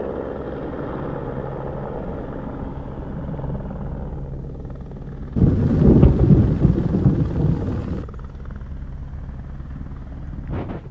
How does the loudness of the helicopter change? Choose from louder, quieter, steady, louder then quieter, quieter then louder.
quieter.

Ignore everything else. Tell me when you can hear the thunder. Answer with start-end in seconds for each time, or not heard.
5.3-8.1.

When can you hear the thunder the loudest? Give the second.
6 s.